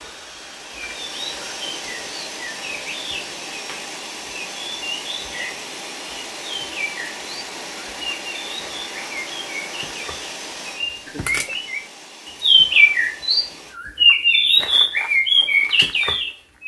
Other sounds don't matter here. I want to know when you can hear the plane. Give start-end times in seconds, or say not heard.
0.0-13.8.